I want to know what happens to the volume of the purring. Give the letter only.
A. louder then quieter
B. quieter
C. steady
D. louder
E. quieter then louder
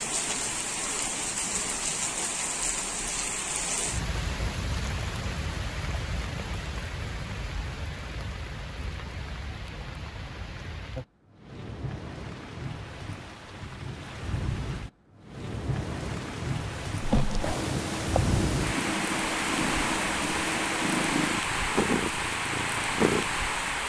C.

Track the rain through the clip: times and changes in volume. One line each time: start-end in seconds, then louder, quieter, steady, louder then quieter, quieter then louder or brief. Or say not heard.
0.0-23.8 quieter then louder.